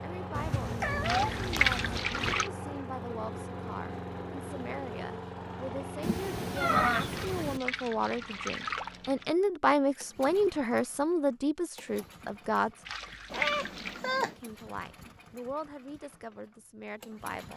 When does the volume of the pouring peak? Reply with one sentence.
The loudest moment of the pouring is at 2 seconds.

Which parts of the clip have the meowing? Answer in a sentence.
The meowing can be heard from 0.3 to 2.4 s, from 6.0 to 7.6 s and from 13.3 to 14.3 s.